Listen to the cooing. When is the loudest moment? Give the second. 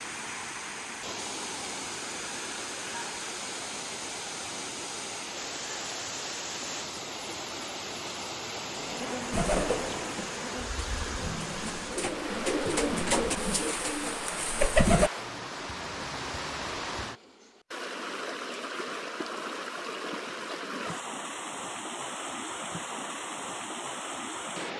15 s.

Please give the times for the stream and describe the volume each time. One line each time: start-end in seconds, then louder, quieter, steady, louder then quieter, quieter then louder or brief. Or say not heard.
0.0-24.7 steady.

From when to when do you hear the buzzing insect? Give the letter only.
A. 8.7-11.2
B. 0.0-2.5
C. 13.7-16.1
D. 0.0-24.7
A.